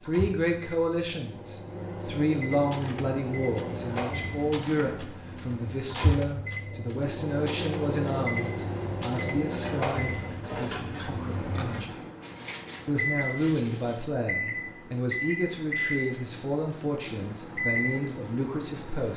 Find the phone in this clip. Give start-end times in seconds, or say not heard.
not heard.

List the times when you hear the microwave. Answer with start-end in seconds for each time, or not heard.
0.0-19.1.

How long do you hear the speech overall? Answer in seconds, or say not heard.
18 s.